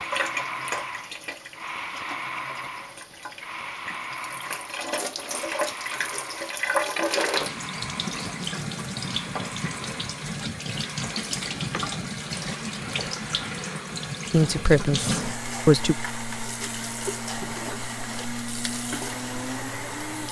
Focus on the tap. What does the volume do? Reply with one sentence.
The loudness of the tap goes up, then down.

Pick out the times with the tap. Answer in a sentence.
The tap can be heard from 0.0 to 20.2 s.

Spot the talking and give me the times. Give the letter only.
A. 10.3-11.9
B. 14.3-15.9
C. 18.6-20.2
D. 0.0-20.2
B.